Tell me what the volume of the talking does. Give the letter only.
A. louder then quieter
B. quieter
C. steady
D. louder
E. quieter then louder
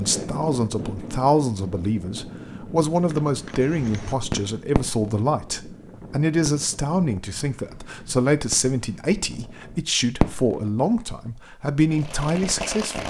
C.